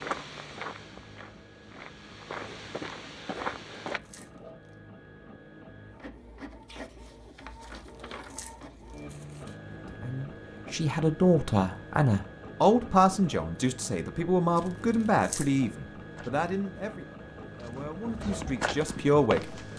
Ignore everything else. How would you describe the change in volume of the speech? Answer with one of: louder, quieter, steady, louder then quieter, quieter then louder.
quieter.